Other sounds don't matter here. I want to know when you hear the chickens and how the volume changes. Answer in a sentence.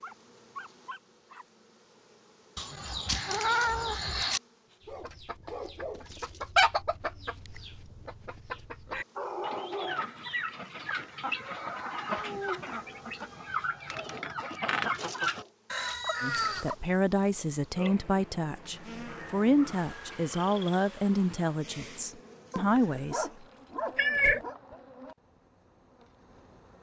The chickens can be heard from 4.8 to 16.8 s, getting quieter then louder.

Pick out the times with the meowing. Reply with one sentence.
The meowing can be heard from 2.5 to 4.4 s, from 12.2 to 14.1 s and from 23.9 to 24.4 s.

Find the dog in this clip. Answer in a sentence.
You can hear the dog from 0.0 to 1.4 s, from 4.8 to 6.4 s, from 9.2 to 10.2 s, from 13.9 to 15.6 s, from 18.8 to 20.3 s and from 22.5 to 24.6 s.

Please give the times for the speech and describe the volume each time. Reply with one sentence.
The speech can be heard from 16.2 to 23.3 s, at a steady volume.